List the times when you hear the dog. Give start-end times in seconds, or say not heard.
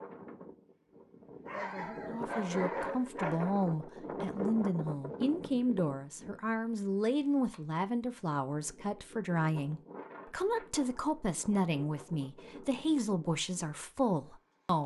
1.4-3.5.